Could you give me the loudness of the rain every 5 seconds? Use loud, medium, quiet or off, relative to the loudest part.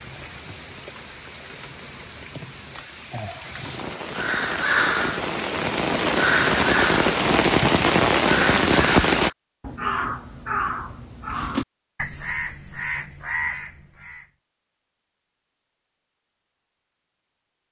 quiet, loud, off, off.